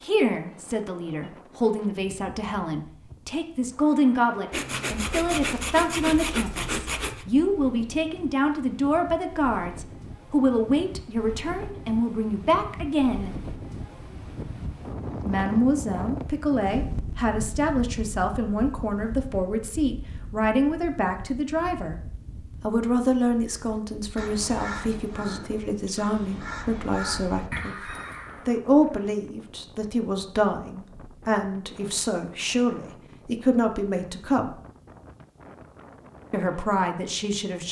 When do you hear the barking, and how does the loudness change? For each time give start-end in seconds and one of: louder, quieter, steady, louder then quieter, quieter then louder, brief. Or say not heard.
not heard.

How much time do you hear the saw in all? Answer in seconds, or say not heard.
3 s.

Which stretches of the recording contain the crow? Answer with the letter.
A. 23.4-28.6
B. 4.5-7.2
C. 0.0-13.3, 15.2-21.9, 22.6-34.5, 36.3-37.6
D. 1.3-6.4
A.